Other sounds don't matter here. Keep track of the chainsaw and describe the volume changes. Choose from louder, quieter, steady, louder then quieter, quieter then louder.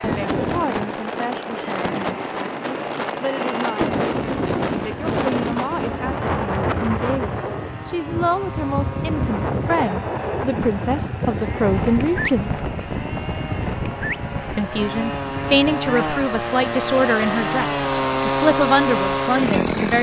louder.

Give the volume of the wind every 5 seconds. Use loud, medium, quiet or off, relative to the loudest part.
loud, loud, loud, medium.